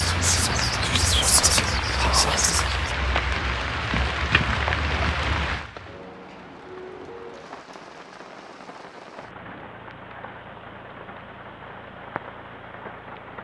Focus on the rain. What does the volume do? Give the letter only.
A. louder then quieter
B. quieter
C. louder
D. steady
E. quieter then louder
B.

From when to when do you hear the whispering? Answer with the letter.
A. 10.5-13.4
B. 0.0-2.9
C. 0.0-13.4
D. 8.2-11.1
B.